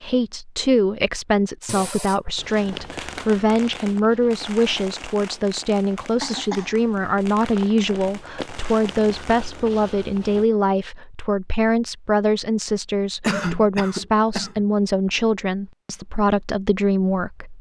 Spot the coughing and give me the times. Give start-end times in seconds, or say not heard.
1.6-2.4, 6.2-6.8, 13.2-14.7.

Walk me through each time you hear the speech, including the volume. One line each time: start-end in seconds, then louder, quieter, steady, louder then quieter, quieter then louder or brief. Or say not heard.
0.0-17.5 steady.